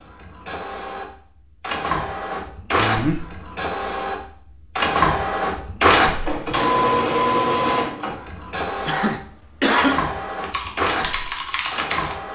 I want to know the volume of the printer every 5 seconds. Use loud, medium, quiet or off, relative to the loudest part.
medium, loud, medium.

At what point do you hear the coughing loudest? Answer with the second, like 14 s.
10 s.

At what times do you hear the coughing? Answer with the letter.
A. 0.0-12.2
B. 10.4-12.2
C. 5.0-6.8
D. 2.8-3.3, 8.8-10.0
D.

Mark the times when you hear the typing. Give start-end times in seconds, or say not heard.
10.4-12.2.